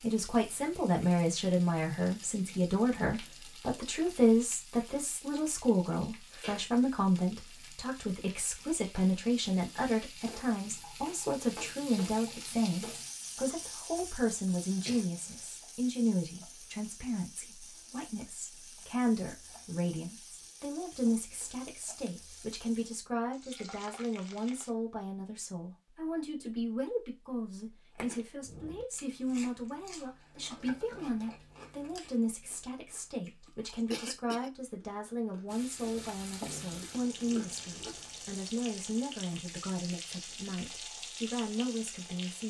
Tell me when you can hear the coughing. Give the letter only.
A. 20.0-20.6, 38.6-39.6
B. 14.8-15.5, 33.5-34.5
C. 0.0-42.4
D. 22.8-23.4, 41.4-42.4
B.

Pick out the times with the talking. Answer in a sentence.
You can hear the talking from 0.0 to 42.4 s.